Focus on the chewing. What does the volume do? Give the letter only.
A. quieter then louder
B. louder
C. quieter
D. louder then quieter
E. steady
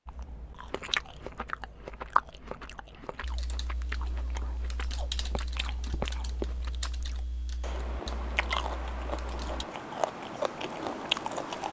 A.